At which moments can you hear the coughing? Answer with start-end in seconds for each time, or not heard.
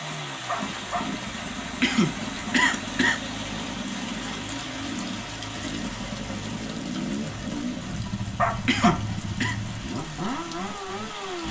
1.8-3.2, 8.7-9.6.